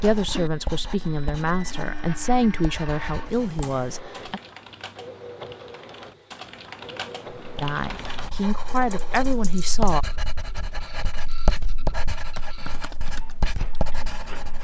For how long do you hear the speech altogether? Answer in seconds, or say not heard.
7 s.